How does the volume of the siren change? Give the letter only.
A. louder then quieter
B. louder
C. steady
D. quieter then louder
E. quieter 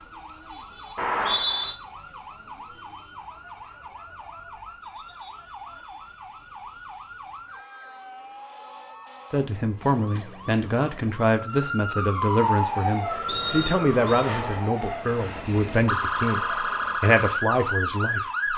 B.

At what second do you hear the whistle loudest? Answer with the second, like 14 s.
1 s.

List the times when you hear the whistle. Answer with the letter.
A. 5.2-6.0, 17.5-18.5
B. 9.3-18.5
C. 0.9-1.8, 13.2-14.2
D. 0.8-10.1
C.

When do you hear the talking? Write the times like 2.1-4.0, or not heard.
9.3-18.5.